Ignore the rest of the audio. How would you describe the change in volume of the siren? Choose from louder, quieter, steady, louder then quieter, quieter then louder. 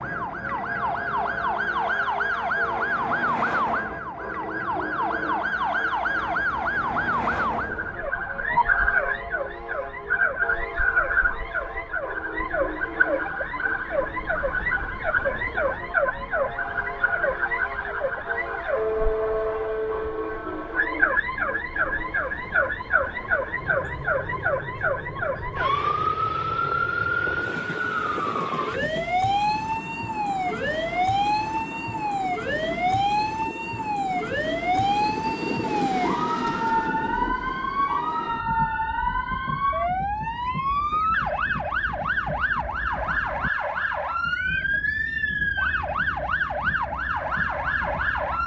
steady.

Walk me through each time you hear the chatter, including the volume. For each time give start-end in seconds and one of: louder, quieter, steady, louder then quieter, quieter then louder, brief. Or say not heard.
not heard.